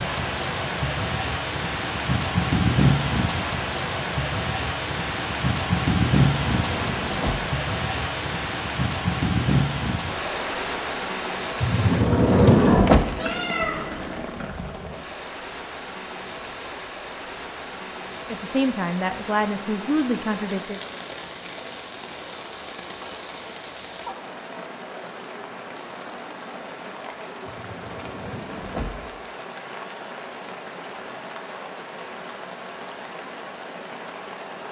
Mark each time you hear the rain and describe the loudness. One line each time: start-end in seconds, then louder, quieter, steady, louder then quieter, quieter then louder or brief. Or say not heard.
0.0-34.6 quieter.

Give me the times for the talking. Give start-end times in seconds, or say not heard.
18.3-20.8.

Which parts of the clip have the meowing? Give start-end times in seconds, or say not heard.
13.2-14.2.